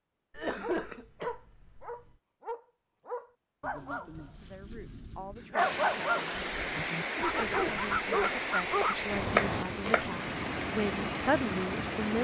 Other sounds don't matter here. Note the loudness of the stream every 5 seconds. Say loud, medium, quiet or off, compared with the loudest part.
off, loud, loud.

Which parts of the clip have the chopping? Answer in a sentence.
You can hear the chopping from 8.2 to 10.1 s.